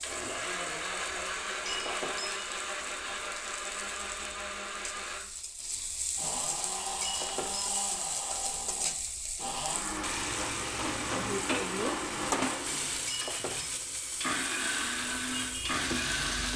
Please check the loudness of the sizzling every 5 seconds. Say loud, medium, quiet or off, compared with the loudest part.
medium, loud, loud, loud.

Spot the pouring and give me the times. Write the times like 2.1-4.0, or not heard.
not heard.